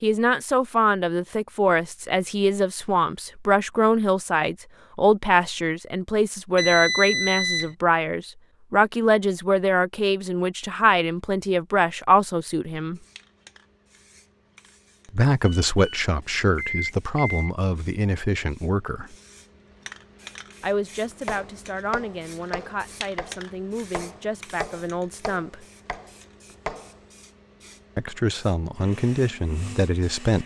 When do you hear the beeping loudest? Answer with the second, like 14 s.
7 s.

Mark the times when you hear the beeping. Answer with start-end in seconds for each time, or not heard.
6.5-7.8, 15.4-17.5.